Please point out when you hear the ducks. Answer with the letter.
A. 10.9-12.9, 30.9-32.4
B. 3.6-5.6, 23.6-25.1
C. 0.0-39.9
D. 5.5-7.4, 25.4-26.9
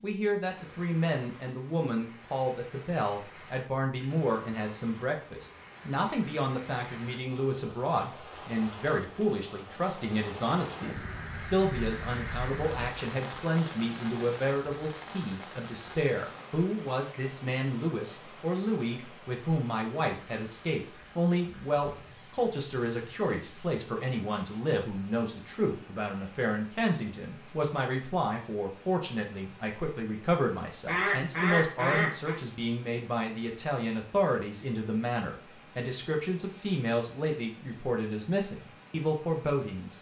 A.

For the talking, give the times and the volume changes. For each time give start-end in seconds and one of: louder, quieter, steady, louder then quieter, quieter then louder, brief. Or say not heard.
0.0-39.9 steady.